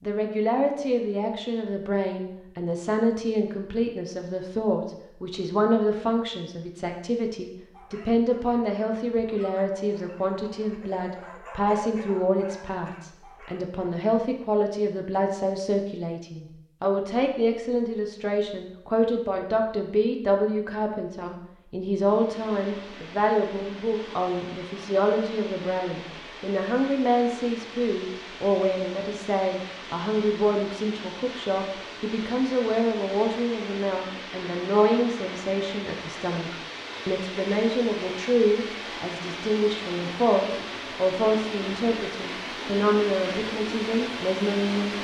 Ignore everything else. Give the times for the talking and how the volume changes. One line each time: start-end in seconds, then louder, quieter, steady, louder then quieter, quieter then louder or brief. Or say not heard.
0.0-44.9 steady.